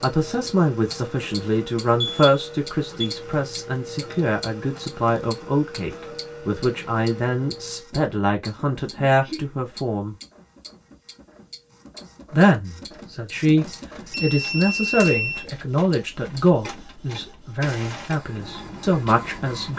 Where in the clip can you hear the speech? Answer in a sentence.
You can hear the speech from 0.0 to 10.2 s and from 12.3 to 19.7 s.